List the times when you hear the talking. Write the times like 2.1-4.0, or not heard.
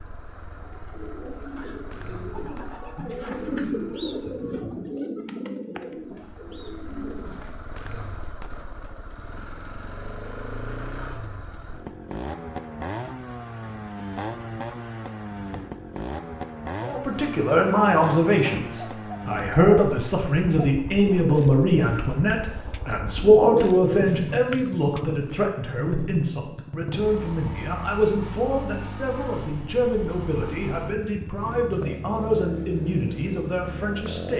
16.8-34.3.